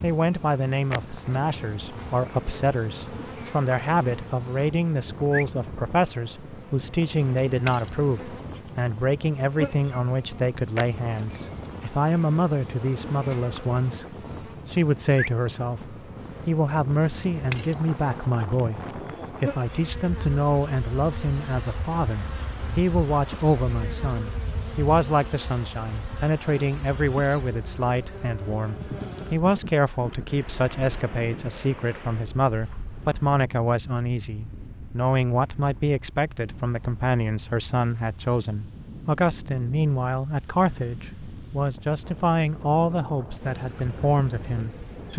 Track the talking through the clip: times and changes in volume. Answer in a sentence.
You can hear the talking from 0.0 to 45.1 s, at a steady volume.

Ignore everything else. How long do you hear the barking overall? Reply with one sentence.
The barking can't be heard in this clip.